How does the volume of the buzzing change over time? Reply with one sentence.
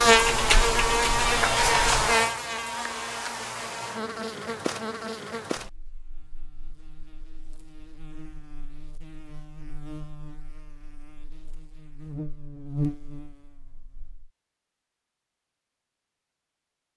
The volume of the buzzing goes down, then up.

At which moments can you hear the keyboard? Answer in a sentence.
The keyboard can be heard from 0.1 to 2.1 s.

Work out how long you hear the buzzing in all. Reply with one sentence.
You can hear the buzzing for 14 seconds altogether.